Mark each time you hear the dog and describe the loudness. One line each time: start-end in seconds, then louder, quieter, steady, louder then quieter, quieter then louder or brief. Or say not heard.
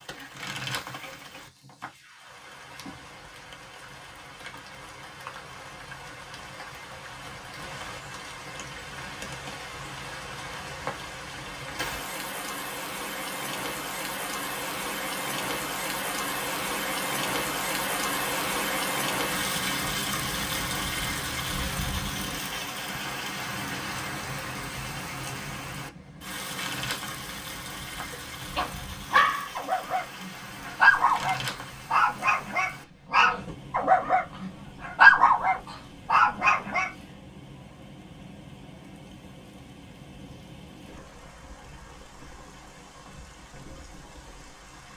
28.1-36.9 louder.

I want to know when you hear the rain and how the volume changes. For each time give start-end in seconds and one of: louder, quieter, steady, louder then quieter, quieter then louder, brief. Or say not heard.
0.0-44.9 louder then quieter.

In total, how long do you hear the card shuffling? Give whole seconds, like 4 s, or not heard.
4 s.